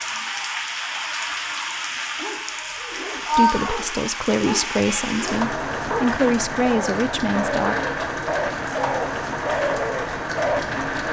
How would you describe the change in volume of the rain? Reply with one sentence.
The volume of the rain stays about the same.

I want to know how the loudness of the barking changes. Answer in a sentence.
The volume of the barking goes up.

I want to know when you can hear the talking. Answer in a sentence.
The talking can be heard from 3.4 to 7.8 s.